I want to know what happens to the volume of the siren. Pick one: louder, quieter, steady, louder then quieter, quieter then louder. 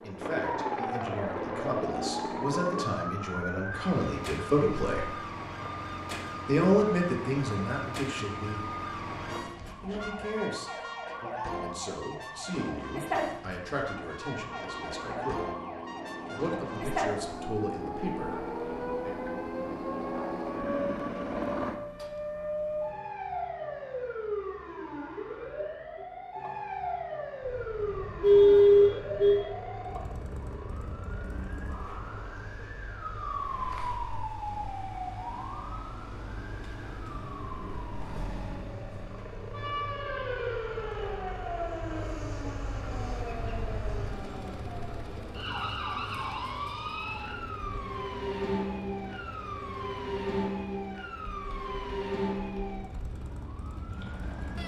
steady.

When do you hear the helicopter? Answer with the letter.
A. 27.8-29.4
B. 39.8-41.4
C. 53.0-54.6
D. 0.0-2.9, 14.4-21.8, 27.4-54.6
D.